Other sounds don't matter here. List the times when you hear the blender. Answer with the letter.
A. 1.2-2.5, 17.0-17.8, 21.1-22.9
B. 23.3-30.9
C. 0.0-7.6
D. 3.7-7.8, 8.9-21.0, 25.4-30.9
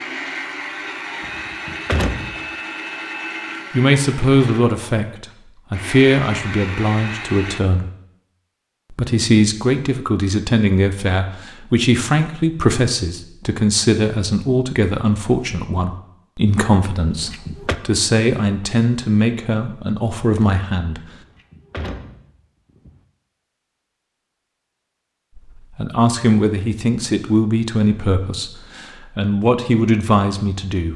C.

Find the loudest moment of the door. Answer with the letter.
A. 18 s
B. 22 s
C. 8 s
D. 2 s
D.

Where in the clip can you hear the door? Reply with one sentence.
You can hear the door from 1.2 to 2.5 s, from 17.0 to 17.8 s and from 21.1 to 22.9 s.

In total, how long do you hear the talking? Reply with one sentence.
The talking can be heard for 22 seconds in total.